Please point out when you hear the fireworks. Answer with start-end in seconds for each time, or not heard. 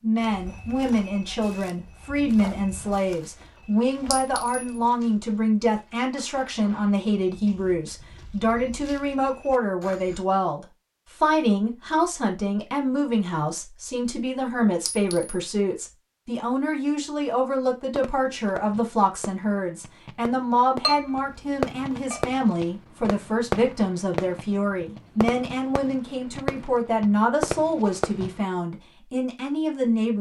17.6-28.4.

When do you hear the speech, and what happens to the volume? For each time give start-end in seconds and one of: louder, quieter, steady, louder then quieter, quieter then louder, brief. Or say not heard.
0.0-30.1 steady.